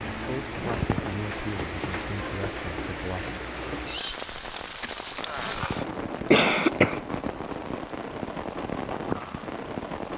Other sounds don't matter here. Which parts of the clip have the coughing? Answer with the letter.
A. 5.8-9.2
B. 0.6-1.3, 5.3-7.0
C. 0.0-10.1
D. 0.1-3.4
B.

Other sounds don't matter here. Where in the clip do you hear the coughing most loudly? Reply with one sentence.
The volume of the coughing peaks at 6 seconds.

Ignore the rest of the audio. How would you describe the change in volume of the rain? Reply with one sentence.
The volume of the rain stays about the same.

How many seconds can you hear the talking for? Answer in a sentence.
You can hear the talking for 3 seconds altogether.